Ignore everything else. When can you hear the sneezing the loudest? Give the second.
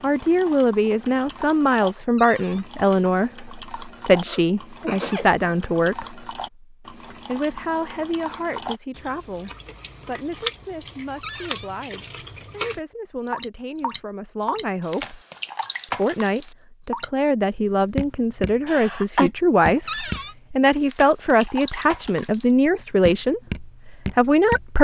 19 s.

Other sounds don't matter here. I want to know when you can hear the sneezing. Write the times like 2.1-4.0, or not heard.
4.2-5.3, 18.6-19.3.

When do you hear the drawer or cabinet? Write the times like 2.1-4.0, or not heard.
2.1-2.6, 11.2-11.7, 19.9-20.4.